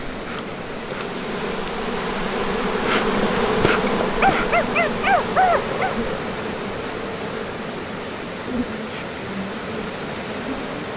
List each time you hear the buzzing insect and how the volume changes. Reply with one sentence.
You can hear the buzzing insect from 0.1 to 10.9 s, getting louder then quieter.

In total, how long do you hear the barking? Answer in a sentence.
The barking can be heard for 2 seconds in total.